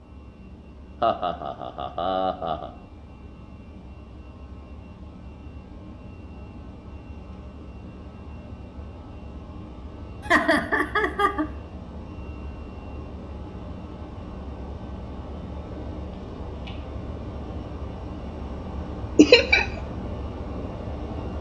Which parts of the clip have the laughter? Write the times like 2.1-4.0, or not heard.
1.0-2.7, 10.2-11.4, 19.1-19.6.